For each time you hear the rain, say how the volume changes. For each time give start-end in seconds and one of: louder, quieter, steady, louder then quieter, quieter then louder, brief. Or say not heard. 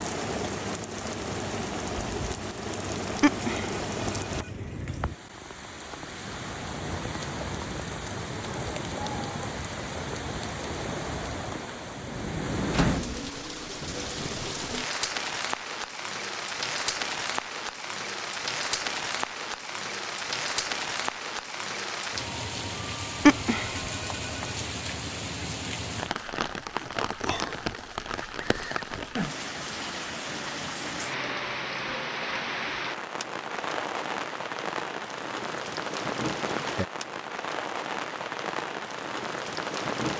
0.0-40.1 steady.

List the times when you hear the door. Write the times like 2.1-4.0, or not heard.
12.7-13.3.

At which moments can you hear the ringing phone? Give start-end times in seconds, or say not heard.
3.2-4.5, 23.2-24.5.